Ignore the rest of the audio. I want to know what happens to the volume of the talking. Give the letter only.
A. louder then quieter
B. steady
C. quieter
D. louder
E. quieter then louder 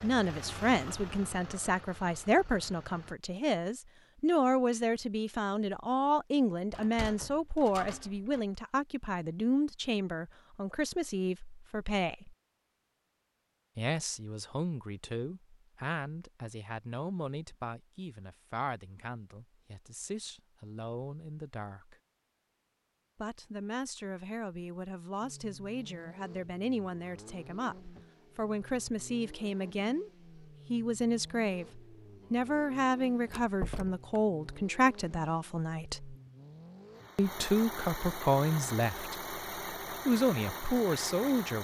E.